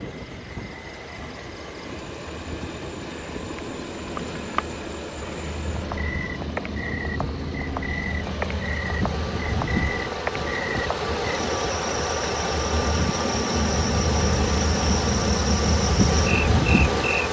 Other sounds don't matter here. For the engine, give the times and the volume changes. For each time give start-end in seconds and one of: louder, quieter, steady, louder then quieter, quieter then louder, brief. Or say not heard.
0.0-17.2 louder.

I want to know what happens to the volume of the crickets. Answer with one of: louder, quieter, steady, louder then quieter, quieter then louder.
louder.